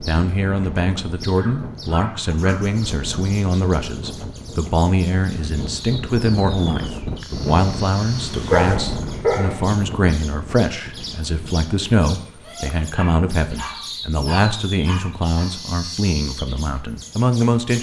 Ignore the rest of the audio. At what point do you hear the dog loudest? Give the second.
9 s.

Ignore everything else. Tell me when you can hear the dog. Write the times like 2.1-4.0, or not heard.
1.4-2.5, 8.4-9.6, 12.9-15.4.